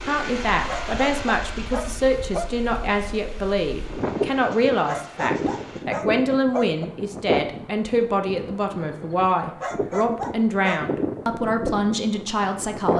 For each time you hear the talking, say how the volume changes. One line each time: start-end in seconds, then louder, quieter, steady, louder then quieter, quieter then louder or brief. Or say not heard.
0.1-12.9 steady.